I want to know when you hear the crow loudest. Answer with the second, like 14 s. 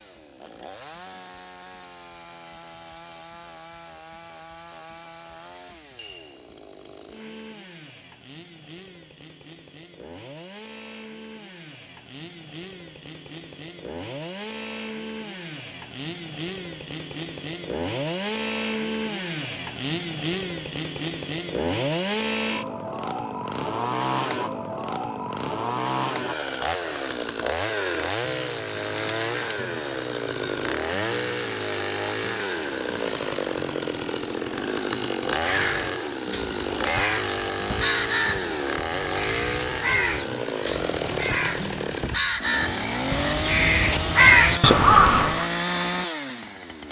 44 s.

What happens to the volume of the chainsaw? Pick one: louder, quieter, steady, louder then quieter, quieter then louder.
louder.